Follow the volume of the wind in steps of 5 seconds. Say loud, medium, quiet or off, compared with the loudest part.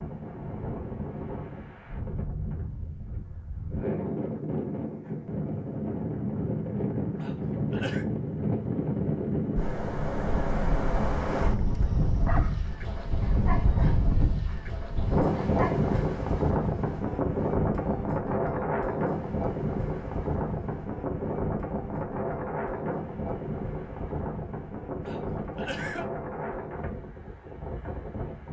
medium, loud, loud, loud, medium, medium.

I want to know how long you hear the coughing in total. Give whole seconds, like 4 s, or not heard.
2 s.